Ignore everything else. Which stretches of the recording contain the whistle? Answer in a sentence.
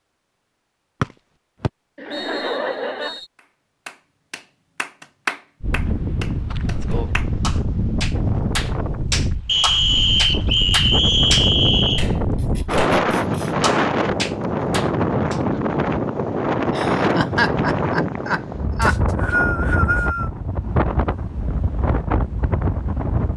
The whistle can be heard from 1.0 to 3.2 s, from 9.4 to 12.1 s and from 18.8 to 20.3 s.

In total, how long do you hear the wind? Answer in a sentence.
The wind can be heard for 18 seconds in total.